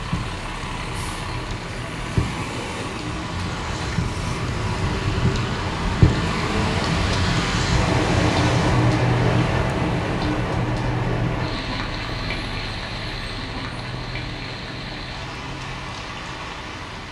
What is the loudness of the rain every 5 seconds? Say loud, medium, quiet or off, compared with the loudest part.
medium, loud, medium, quiet.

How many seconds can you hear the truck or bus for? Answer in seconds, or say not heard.
17 s.